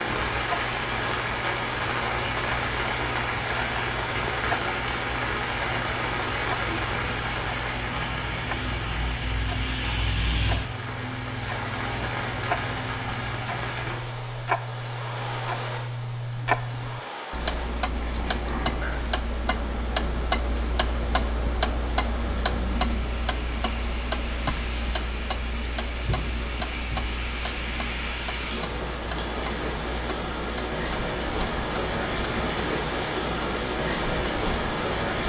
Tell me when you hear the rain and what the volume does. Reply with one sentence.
The rain can be heard from 0.0 to 35.2 s, getting quieter then louder.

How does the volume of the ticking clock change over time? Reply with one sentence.
The volume of the ticking clock goes up, then down.